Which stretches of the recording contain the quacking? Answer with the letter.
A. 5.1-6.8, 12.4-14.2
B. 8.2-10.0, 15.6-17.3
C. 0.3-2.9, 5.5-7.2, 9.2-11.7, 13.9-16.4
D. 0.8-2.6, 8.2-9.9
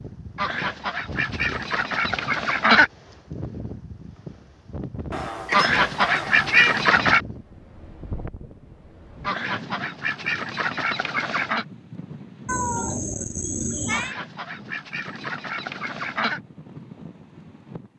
C.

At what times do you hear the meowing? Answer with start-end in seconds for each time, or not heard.
5.1-6.8, 12.4-14.2.